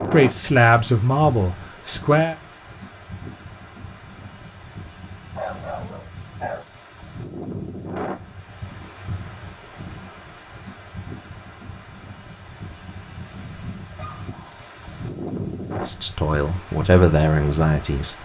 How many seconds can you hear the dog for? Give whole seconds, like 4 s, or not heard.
2 s.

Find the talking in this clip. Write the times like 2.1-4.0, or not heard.
0.1-2.4, 15.8-18.2.